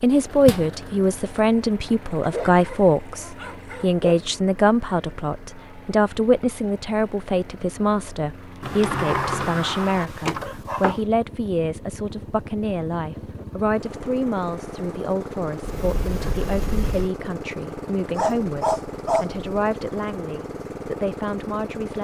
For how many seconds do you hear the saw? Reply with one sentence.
You can't hear the saw here.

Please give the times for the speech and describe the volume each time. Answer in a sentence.
You can hear the speech from 0.0 to 22.0 s, getting quieter.